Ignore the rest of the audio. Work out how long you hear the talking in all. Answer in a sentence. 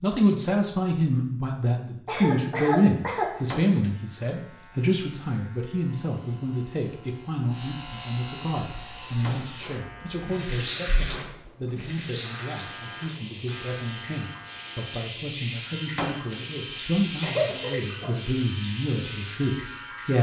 You can hear the talking for 20 seconds altogether.